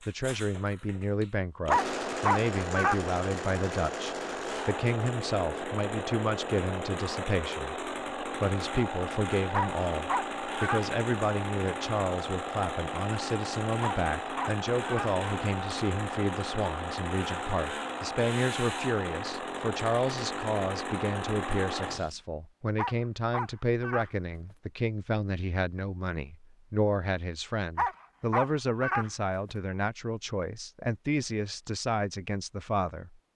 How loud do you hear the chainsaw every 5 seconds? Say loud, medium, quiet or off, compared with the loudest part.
loud, loud, loud, loud, loud, off, off.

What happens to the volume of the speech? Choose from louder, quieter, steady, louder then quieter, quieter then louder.
steady.